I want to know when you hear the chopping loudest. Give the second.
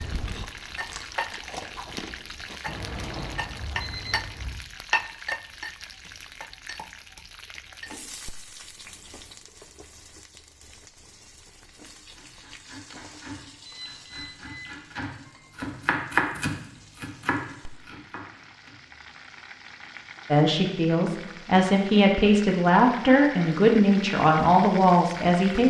16 s.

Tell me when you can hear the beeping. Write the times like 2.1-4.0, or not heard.
2.6-4.6, 13.7-14.8.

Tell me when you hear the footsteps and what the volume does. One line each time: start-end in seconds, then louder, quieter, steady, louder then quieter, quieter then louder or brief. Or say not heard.
not heard.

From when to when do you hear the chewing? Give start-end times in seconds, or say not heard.
0.0-2.6.